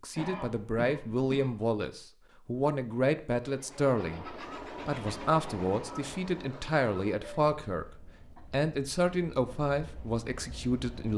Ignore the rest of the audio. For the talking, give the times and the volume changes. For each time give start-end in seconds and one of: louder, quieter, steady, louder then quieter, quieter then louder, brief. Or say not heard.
0.0-11.1 steady.